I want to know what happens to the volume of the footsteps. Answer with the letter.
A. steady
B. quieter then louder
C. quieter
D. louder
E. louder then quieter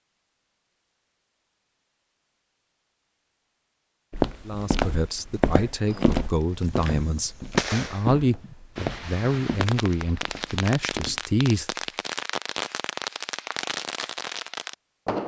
C.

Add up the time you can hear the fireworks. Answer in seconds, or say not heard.
9 s.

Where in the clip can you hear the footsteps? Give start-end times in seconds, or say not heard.
4.1-11.3.